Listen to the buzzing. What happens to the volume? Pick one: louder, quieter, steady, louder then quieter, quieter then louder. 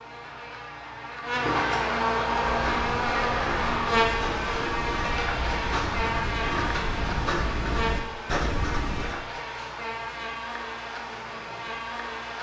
quieter.